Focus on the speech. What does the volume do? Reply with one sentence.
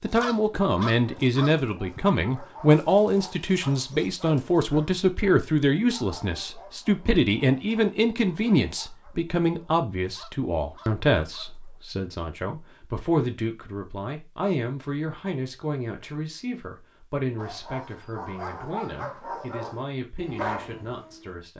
The loudness of the speech goes down.